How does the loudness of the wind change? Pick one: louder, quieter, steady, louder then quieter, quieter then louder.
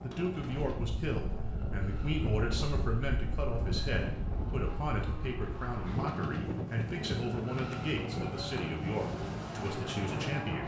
steady.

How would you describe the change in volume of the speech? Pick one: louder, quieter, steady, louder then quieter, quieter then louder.
steady.